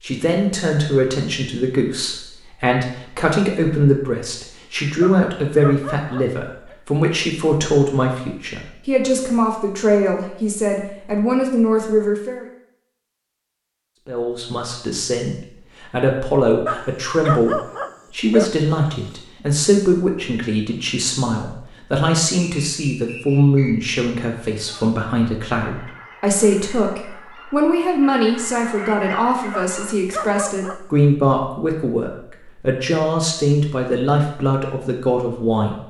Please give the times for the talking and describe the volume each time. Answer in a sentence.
The talking can be heard from 0.0 to 12.4 s, at a steady volume; and from 14.1 to 35.8 s, at a steady volume.